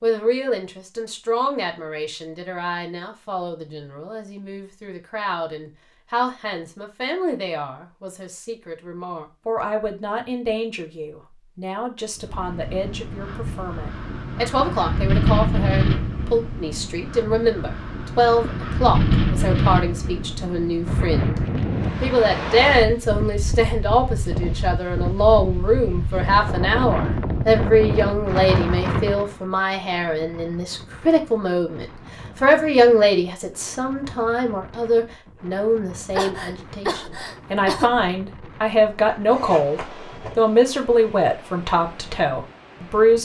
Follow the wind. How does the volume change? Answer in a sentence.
The volume of the wind goes down.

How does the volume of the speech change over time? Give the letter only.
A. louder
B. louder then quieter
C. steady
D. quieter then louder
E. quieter
A.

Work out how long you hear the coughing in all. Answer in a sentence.
You can hear the coughing for 2 seconds altogether.